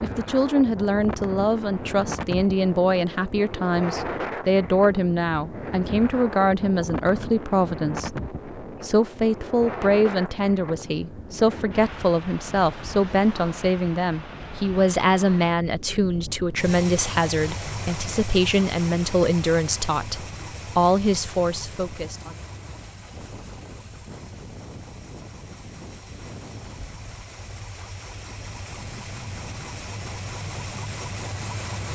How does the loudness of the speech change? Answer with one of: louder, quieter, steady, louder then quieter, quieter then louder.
steady.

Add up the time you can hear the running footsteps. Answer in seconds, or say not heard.
not heard.